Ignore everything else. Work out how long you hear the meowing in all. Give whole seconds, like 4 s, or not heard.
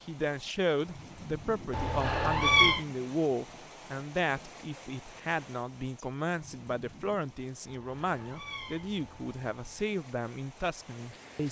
3 s.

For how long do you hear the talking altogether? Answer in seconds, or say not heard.
11 s.